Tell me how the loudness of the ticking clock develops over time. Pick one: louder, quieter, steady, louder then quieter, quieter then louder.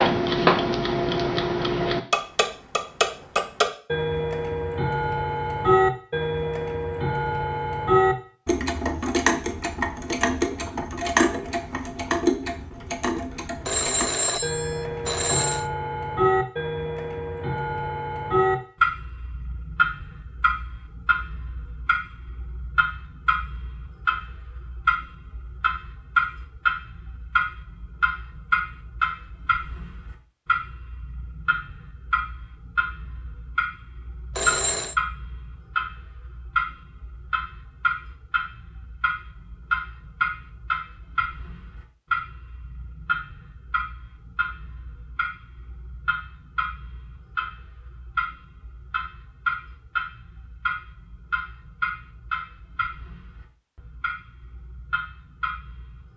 quieter.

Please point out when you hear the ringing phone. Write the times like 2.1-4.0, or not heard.
13.6-15.7, 34.3-35.0.